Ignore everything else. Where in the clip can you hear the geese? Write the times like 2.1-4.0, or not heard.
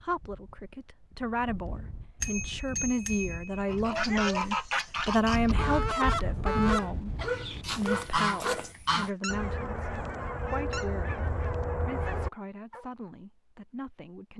3.6-12.3.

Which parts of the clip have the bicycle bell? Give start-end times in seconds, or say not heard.
2.2-3.6.